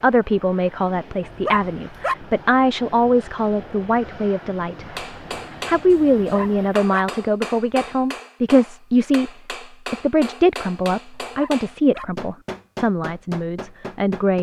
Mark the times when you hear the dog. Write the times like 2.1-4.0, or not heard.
1.2-2.1, 6.2-7.0, 11.1-12.1.